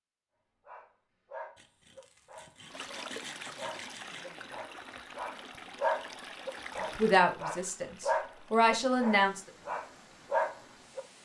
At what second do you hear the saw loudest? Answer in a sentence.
The loudest moment of the saw is at 3 seconds.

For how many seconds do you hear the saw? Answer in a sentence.
The saw can be heard for 3 seconds in total.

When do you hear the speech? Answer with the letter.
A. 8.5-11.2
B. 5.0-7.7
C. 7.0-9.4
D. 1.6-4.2
C.